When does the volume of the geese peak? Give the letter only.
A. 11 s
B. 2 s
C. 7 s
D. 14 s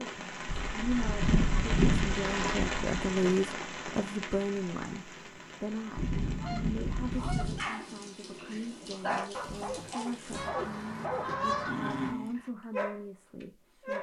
B.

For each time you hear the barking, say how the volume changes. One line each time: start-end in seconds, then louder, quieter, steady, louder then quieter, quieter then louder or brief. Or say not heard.
7.5-13.9 louder.